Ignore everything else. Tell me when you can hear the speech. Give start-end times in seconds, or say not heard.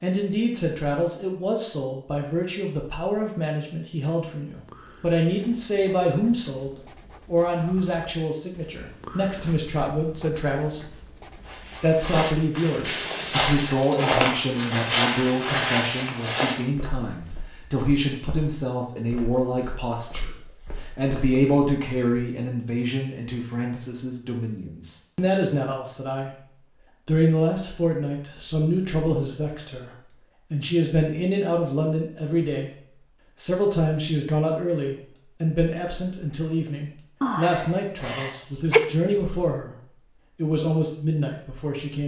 0.0-11.2, 11.8-26.4, 27.1-32.8, 33.4-42.0.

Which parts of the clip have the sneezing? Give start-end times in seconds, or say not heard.
37.2-38.9.